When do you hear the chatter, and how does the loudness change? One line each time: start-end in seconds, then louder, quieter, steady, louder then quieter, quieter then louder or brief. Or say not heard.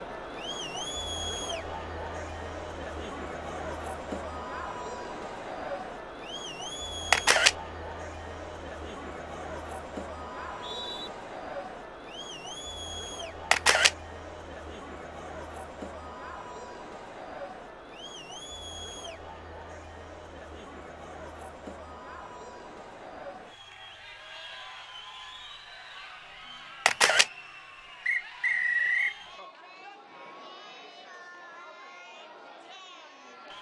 0.0-33.5 quieter.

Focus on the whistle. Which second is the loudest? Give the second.
29 s.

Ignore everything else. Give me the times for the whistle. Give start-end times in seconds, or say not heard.
10.6-11.1, 28.1-29.1.